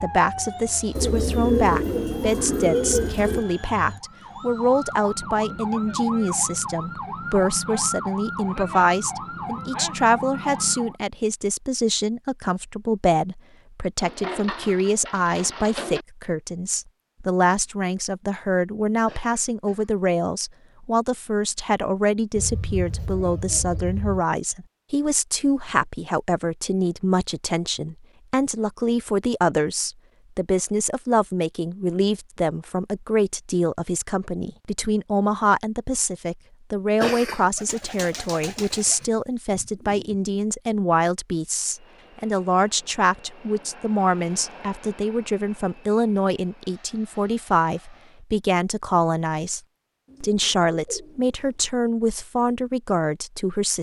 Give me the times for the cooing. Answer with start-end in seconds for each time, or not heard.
0.9-3.5, 14.0-16.1, 22.4-24.2, 37.5-40.1, 50.0-51.5.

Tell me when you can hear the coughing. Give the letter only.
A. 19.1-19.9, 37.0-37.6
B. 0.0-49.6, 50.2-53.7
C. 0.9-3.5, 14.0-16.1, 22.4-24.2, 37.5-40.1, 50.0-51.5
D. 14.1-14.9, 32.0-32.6
A.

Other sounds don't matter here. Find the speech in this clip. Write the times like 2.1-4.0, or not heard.
0.0-49.6, 50.2-53.7.